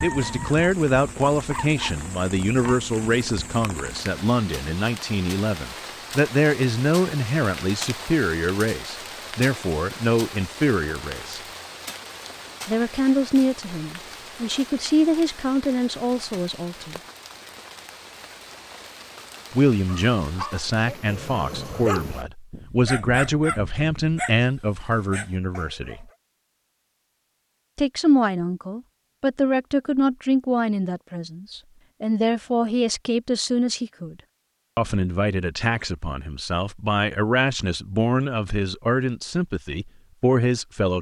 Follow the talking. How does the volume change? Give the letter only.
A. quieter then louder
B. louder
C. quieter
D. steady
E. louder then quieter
D.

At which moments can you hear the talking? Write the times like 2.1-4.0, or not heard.
0.0-11.4, 12.7-17.0, 19.5-26.1, 27.8-34.1, 34.8-40.9.